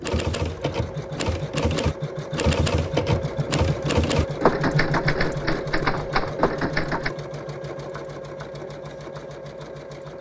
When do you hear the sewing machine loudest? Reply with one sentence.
The volume of the sewing machine peaks at 5 seconds.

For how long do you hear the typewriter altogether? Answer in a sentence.
You can hear the typewriter for 7 seconds altogether.